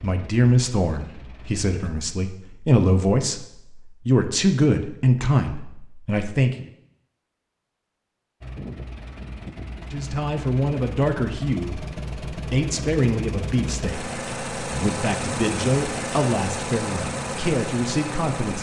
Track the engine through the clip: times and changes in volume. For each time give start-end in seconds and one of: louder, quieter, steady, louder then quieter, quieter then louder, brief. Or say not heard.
0.0-1.9 brief
8.4-18.5 louder.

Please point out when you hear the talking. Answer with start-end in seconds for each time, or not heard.
0.0-6.7, 9.8-18.5.